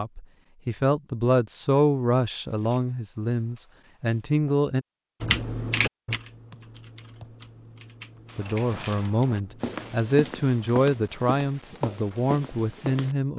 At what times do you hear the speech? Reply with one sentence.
The speech can be heard from 0.0 to 4.8 s and from 8.3 to 13.3 s.